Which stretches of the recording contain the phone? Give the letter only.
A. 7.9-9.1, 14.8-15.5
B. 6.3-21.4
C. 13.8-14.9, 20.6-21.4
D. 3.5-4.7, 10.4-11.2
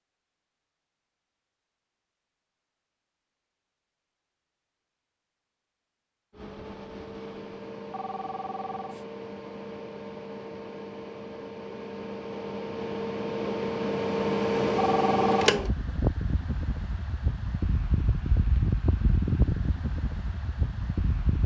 A.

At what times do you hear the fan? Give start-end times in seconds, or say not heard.
6.3-21.4.